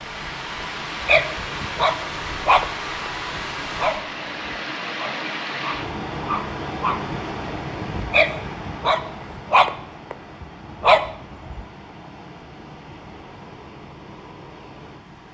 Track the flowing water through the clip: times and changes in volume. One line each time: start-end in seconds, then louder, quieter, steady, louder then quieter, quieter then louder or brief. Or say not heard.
0.0-15.2 quieter.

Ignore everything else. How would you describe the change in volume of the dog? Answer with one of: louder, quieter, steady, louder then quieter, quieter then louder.
quieter then louder.